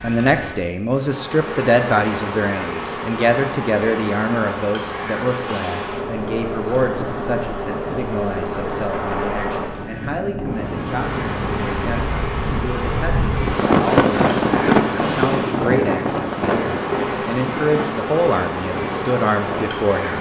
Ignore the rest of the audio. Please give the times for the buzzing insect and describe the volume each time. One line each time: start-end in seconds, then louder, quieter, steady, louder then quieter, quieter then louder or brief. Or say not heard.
0.0-20.1 steady.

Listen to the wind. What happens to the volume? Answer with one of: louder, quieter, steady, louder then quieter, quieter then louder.
louder then quieter.